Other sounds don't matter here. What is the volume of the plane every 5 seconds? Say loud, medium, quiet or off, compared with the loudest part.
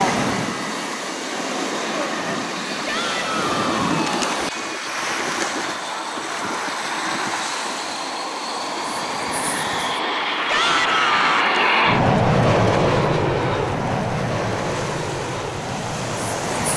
quiet, medium, loud, medium.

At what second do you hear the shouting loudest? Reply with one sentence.
The loudest moment of the shouting is at 11 seconds.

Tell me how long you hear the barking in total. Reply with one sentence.
The barking can't be heard in this clip.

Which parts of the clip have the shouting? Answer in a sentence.
You can hear the shouting from 2.9 to 4.2 s and from 10.4 to 11.4 s.